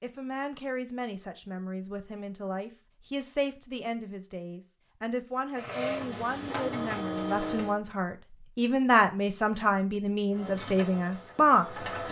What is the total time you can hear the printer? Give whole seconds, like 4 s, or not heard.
4 s.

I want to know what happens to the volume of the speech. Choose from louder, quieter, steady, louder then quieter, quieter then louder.
louder.